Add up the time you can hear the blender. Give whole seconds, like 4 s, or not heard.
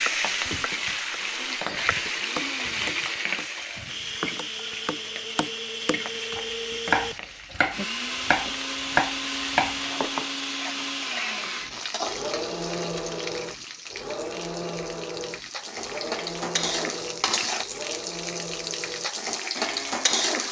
20 s.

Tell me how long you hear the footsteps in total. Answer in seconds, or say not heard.
not heard.